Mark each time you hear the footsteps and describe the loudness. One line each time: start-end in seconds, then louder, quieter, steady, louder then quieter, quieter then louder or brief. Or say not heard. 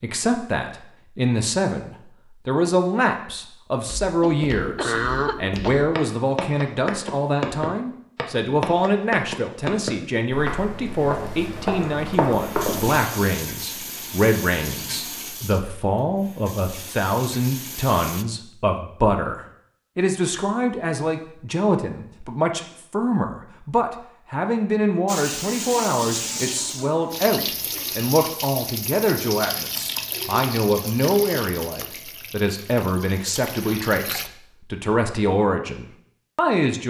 3.8-13.1 louder.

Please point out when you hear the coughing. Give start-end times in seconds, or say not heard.
4.2-6.0.